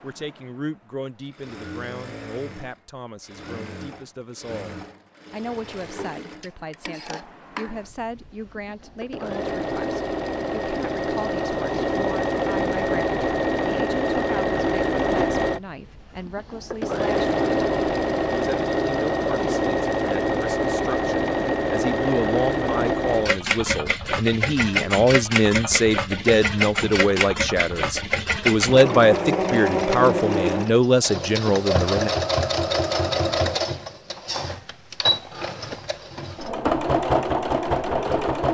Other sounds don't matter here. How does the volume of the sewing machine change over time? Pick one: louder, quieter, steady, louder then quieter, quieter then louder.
louder.